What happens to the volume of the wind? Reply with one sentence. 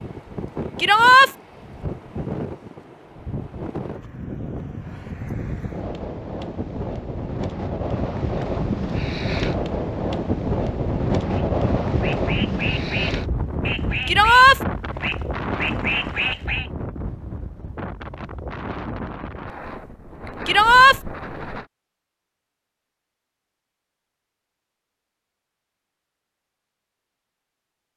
The loudness of the wind goes up, then down.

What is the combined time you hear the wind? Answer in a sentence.
The wind can be heard for 22 seconds in total.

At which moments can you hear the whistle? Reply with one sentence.
The whistle can't be heard in this clip.